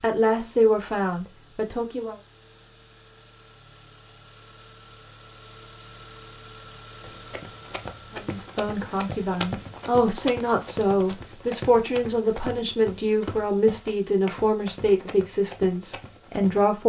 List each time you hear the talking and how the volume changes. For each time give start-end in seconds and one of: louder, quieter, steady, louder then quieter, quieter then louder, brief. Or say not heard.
0.0-2.1 brief
8.1-16.8 steady.